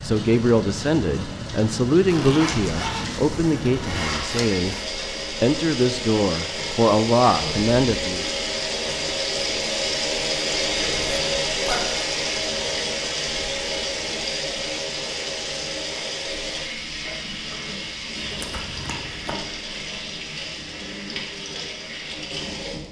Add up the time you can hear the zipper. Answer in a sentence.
You can hear the zipper for 5 seconds altogether.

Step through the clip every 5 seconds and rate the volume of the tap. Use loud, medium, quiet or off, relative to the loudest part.
medium, loud, loud, medium, medium.